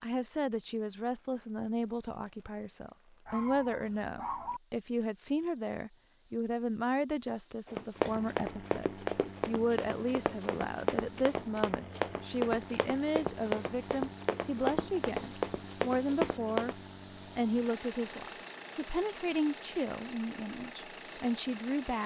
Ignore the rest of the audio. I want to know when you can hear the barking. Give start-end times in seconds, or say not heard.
3.2-4.6.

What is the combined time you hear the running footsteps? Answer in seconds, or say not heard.
9 s.